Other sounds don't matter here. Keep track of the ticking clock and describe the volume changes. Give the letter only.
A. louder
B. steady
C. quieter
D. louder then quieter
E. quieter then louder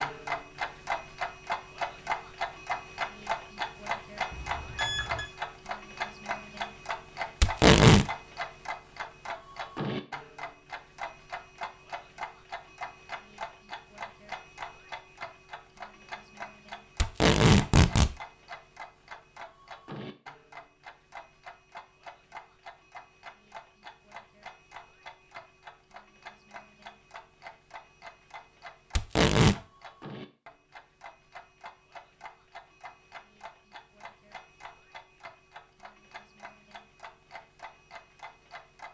C.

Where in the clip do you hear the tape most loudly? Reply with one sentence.
The loudest moment of the tape is at 8 seconds.